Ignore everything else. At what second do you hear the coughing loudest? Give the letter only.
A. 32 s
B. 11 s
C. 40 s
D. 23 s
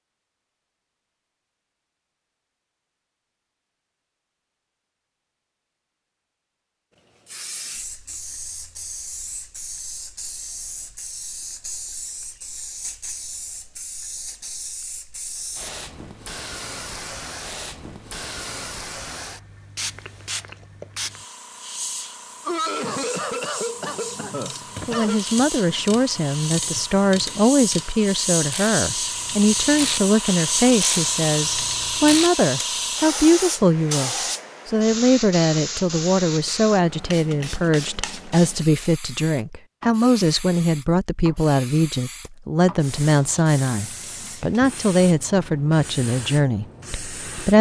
D.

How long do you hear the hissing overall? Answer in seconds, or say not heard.
40 s.